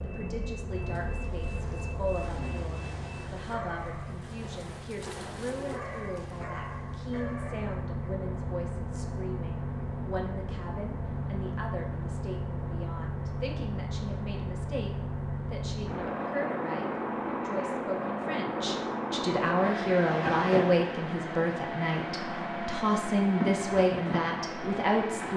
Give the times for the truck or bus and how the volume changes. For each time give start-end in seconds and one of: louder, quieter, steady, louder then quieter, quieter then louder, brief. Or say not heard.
0.0-25.3 louder.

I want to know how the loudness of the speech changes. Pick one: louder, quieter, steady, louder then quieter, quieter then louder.
louder.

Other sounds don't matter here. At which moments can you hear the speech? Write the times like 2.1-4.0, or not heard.
0.0-25.3.